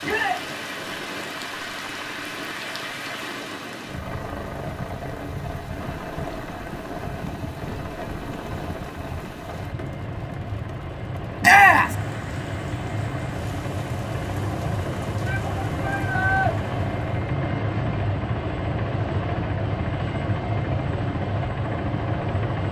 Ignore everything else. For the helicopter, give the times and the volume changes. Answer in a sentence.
You can hear the helicopter from 0.0 to 22.6 s, getting louder.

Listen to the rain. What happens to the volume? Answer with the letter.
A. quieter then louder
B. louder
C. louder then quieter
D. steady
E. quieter
E.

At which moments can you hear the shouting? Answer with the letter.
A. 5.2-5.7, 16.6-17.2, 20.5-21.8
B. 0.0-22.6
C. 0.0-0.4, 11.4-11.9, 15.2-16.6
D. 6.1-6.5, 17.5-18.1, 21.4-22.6
C.